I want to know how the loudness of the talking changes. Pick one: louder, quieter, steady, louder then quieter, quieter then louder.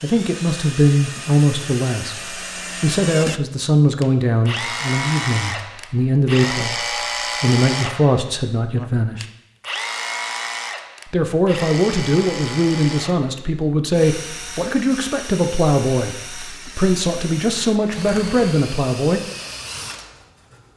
steady.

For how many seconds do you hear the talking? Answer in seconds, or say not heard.
17 s.